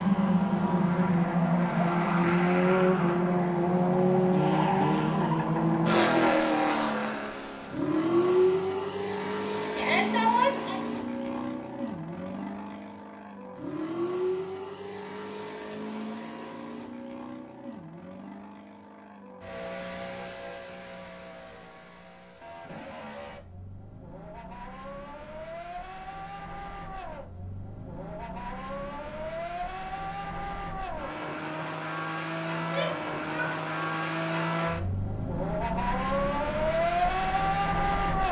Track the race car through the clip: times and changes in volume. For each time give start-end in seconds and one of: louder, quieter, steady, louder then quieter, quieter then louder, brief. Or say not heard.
0.0-38.2 quieter then louder.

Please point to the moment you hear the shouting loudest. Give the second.
10 s.